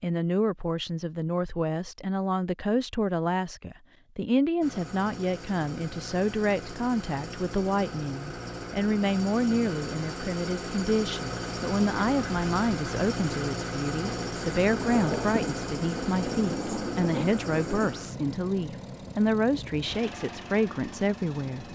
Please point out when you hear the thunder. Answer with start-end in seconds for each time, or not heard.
14.1-18.0.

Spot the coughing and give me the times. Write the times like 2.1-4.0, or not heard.
not heard.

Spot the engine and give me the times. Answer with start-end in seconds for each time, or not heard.
4.6-21.6.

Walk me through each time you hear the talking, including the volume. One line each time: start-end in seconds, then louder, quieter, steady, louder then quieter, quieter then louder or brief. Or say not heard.
0.0-21.6 steady.